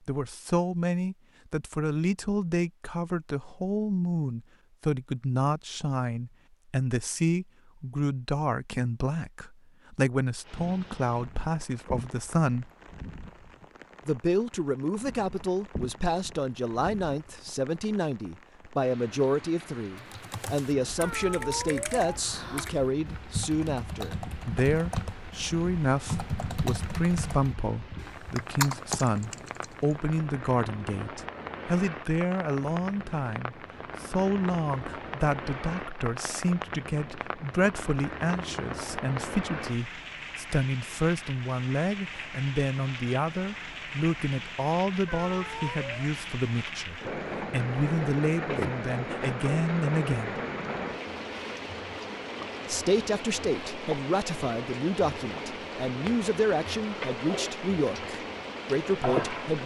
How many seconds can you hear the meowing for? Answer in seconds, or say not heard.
3 s.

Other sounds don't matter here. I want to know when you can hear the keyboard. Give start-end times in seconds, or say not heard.
19.9-29.9.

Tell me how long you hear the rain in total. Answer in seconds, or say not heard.
49 s.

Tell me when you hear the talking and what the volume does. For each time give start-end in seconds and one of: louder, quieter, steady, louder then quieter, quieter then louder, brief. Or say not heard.
0.1-12.7 steady
14.1-50.4 steady
52.6-59.6 steady.